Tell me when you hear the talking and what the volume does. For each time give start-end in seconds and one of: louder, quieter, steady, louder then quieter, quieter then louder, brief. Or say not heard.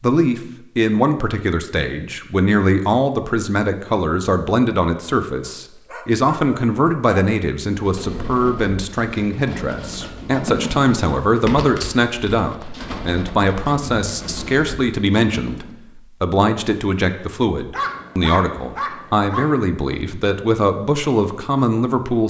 0.0-22.2 steady.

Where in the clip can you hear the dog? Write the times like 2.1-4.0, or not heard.
5.4-7.2, 17.7-19.6.